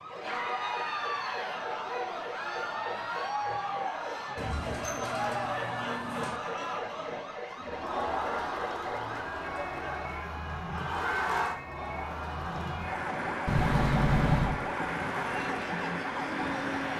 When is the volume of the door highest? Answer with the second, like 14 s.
14 s.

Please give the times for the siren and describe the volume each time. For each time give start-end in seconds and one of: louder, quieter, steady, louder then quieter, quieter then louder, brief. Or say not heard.
0.0-16.9 louder.